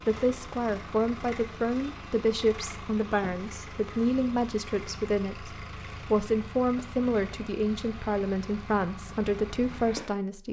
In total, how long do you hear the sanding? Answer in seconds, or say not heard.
not heard.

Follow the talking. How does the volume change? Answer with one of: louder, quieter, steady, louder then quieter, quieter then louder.
steady.